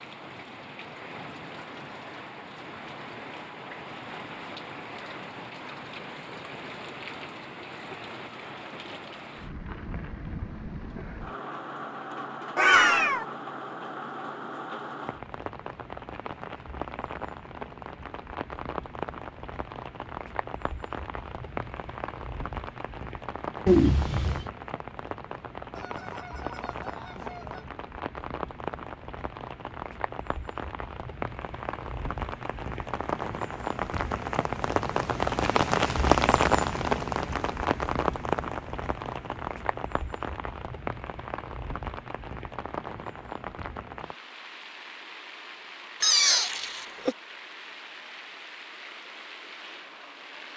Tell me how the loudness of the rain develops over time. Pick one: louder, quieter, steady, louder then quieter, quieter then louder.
louder then quieter.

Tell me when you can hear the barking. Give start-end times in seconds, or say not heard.
not heard.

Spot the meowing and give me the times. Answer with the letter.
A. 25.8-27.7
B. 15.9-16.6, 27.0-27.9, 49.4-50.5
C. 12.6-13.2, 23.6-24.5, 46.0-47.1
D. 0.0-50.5
C.